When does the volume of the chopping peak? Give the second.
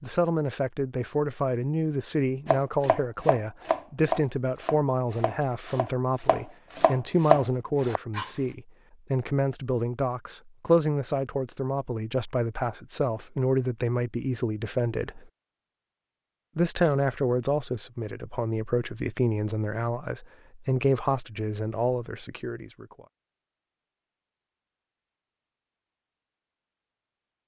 7 s.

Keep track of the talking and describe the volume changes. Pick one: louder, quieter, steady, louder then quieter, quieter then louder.
steady.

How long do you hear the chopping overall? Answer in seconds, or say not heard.
6 s.